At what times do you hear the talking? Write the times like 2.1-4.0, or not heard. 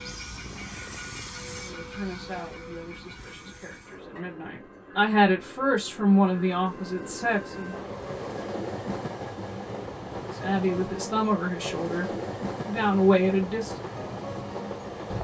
1.5-7.8, 10.4-13.8.